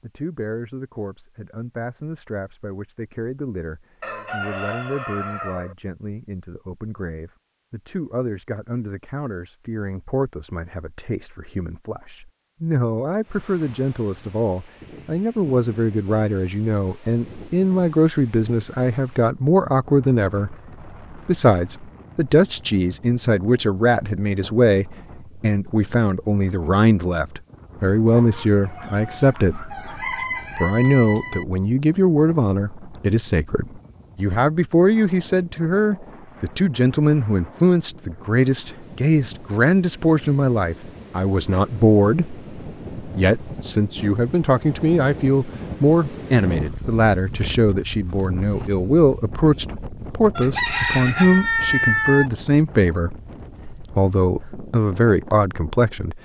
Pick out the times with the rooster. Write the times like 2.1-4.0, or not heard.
4.0-5.8, 28.1-31.4, 50.4-52.3.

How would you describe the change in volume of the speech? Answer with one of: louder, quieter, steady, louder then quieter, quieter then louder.
louder.